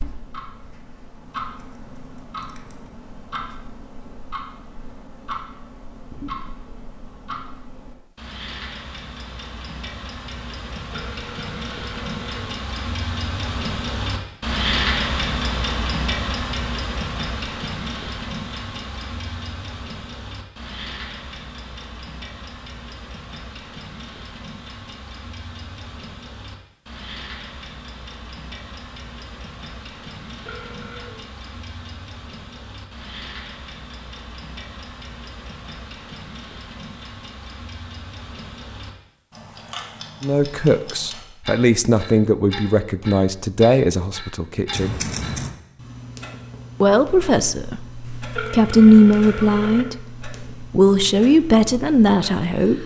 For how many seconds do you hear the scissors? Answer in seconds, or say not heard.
2 s.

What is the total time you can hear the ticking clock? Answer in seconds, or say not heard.
53 s.